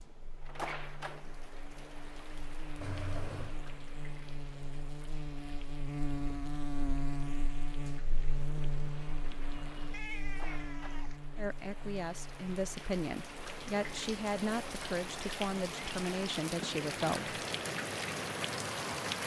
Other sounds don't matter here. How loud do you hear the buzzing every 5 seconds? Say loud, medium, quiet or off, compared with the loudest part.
medium, loud, medium, off.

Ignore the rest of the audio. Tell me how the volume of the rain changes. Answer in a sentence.
The loudness of the rain goes down, then up.